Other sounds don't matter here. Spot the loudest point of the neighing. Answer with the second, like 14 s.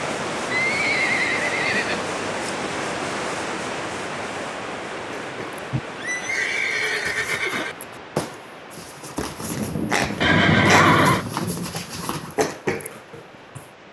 11 s.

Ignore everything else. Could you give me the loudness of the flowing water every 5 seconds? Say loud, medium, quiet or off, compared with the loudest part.
loud, medium, quiet.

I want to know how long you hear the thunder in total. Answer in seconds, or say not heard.
3 s.